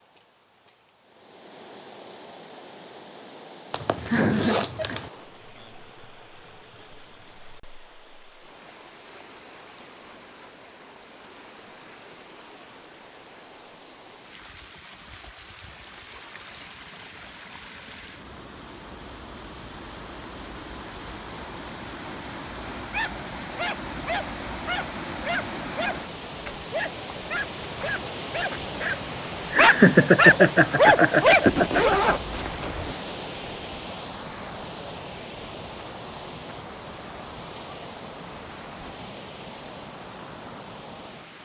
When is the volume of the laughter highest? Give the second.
30 s.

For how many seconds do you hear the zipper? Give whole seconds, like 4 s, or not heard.
3 s.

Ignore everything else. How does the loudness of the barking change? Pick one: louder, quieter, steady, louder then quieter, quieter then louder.
louder.